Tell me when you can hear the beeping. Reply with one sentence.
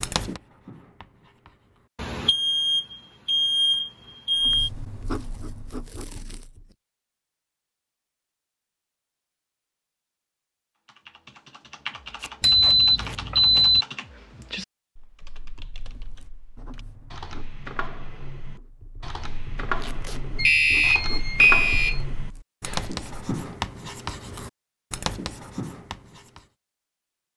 You can hear the beeping from 1.9 to 4.7 s, from 12.4 to 13.8 s and from 20.4 to 22.0 s.